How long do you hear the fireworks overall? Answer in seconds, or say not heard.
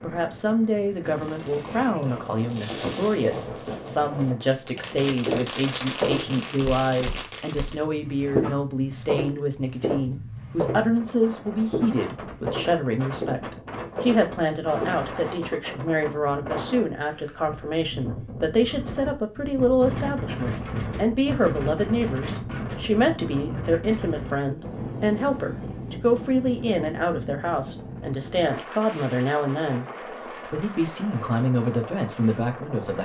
7 s.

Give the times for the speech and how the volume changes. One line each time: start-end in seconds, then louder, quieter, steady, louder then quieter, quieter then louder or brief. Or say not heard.
0.0-33.0 steady.